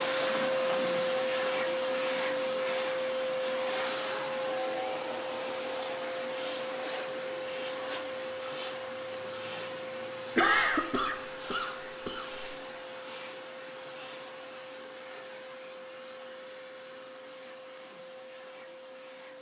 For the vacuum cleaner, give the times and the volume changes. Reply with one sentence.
You can hear the vacuum cleaner from 0.0 to 19.3 s, getting quieter.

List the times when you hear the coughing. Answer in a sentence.
You can hear the coughing from 10.3 to 12.4 s.